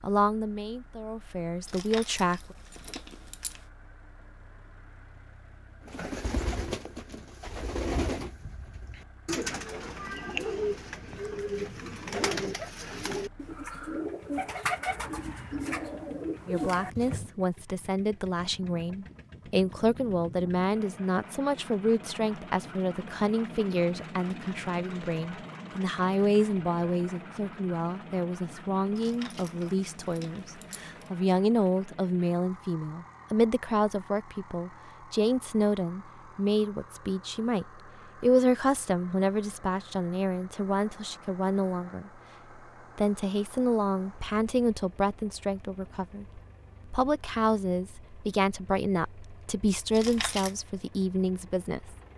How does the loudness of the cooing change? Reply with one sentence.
The loudness of the cooing stays about the same.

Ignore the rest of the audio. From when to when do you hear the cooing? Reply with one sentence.
You can hear the cooing from 5.8 to 17.3 s.